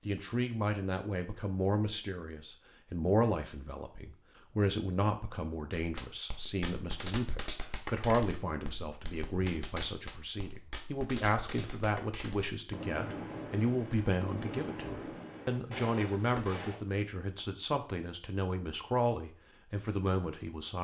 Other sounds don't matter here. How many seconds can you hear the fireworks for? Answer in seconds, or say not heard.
11 s.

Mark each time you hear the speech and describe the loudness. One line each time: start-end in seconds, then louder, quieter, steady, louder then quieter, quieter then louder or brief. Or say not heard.
0.1-20.7 steady.